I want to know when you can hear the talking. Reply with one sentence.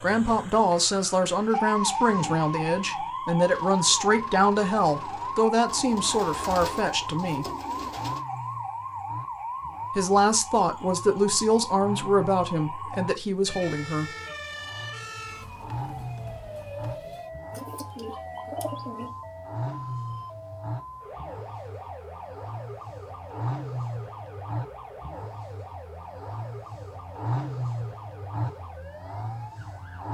You can hear the talking from 0.0 to 7.5 s and from 9.9 to 14.1 s.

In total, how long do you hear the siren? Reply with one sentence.
You can hear the siren for 30 seconds altogether.